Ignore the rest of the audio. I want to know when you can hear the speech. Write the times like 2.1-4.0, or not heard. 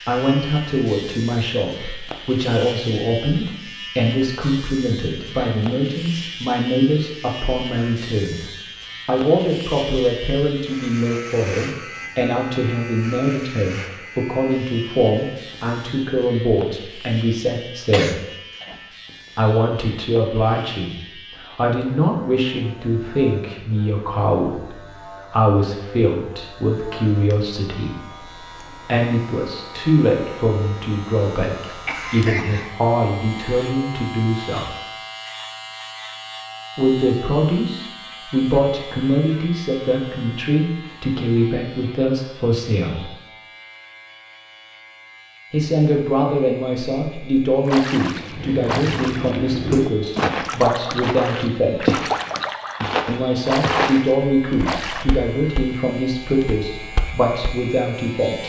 0.1-8.4, 9.1-18.2, 19.4-34.7, 36.8-43.0, 45.5-52.0, 53.0-58.4.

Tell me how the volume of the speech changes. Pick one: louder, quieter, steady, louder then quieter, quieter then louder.
steady.